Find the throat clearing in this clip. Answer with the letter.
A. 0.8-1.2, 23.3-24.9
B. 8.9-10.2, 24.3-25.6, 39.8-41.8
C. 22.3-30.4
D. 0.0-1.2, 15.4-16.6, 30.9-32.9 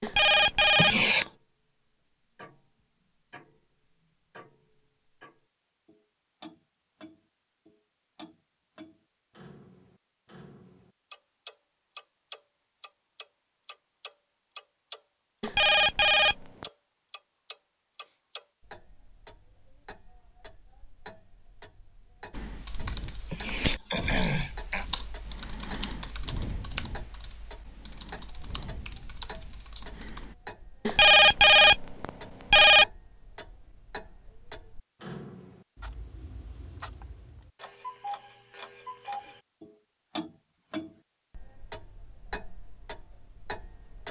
A.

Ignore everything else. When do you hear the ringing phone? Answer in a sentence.
The ringing phone can be heard from 0.0 to 1.2 s, from 15.4 to 16.6 s and from 30.9 to 32.9 s.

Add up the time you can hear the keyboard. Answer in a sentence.
The keyboard can be heard for 8 seconds in total.